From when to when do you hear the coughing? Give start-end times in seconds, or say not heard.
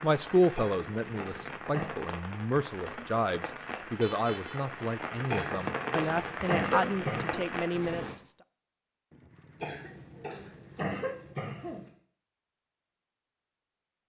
0.6-1.9, 5.3-7.4, 9.6-11.9.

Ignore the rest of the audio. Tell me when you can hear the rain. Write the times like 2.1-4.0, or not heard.
0.0-8.2.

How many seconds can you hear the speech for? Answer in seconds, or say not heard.
8 s.